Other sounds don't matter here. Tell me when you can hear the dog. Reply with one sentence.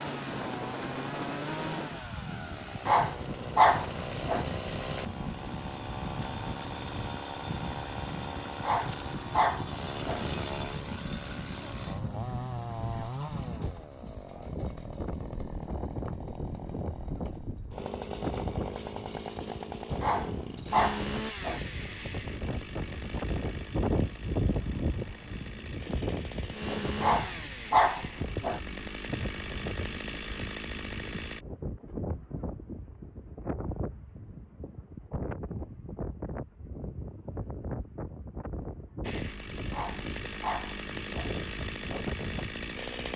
The dog can be heard from 2.9 to 4.5 s, from 8.6 to 10.2 s, from 20.0 to 21.6 s, from 27.0 to 28.6 s and from 39.7 to 41.3 s.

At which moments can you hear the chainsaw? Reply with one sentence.
You can hear the chainsaw from 0.0 to 31.4 s and from 39.0 to 43.1 s.